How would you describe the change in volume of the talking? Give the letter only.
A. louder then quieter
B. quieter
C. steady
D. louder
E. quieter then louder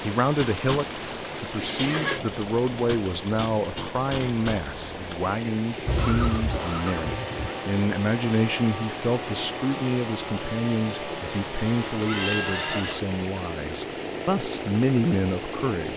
C.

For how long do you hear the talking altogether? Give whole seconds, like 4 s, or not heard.
16 s.